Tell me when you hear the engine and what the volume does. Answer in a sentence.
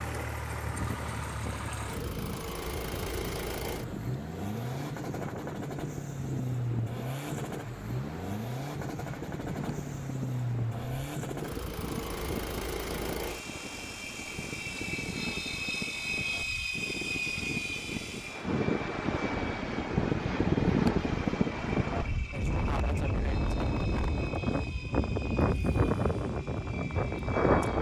The engine can be heard from 0.0 to 27.7 s, getting quieter.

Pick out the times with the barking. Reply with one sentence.
The barking can't be heard in this clip.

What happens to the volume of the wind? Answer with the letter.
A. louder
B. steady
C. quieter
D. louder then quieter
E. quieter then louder
A.